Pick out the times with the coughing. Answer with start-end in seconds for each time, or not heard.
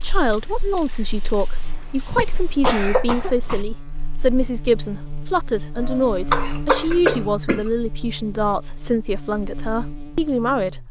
2.1-3.6, 5.8-7.7.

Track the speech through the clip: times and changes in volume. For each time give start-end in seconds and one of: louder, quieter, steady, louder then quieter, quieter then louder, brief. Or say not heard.
0.0-10.8 steady.